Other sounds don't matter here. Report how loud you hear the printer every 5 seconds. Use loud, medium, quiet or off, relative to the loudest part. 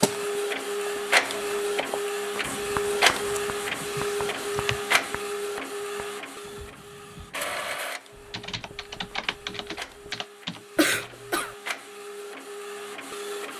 loud, medium, quiet.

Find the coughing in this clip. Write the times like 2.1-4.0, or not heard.
10.8-11.6.